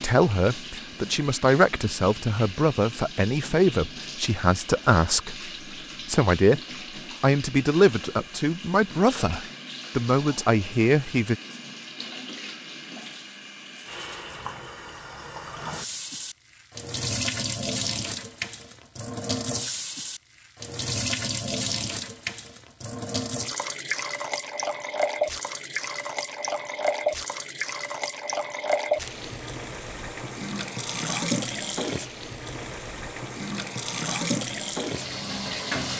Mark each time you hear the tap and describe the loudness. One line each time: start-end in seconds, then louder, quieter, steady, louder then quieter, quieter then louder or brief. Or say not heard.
0.0-35.9 louder.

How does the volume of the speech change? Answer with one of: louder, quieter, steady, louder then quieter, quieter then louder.
steady.